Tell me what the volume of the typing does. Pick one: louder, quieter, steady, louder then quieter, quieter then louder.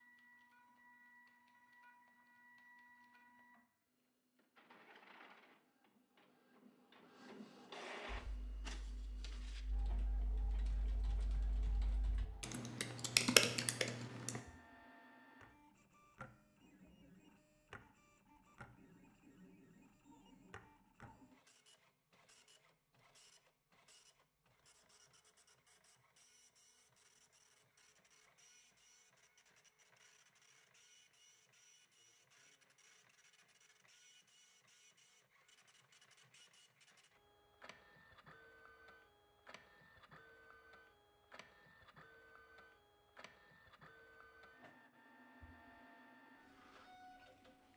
louder.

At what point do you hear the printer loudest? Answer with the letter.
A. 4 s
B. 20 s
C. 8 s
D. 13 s
C.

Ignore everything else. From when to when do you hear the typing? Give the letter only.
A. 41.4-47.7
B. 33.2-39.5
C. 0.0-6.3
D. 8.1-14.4
D.